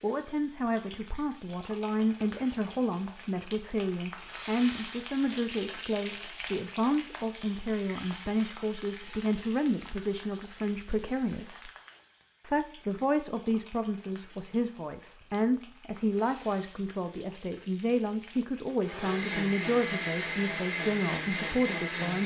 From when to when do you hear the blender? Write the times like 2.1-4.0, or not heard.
18.8-22.2.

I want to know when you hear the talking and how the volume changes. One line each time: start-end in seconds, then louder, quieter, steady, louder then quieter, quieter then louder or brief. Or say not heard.
0.0-11.7 steady
12.4-22.2 steady.